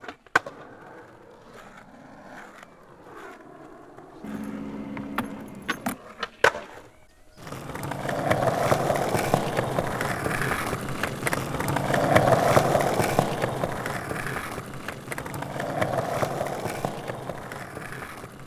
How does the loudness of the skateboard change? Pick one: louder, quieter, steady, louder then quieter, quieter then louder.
louder then quieter.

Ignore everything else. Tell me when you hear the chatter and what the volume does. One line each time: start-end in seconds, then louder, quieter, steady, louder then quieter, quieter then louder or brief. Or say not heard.
not heard.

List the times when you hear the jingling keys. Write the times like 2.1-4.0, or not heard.
4.2-6.0.